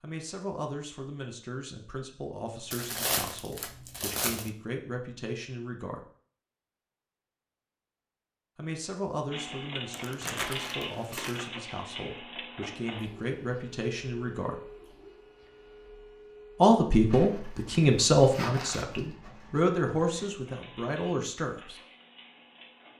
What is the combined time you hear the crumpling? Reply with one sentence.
You can hear the crumpling for 5 seconds altogether.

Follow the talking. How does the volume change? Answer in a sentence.
The volume of the talking goes up.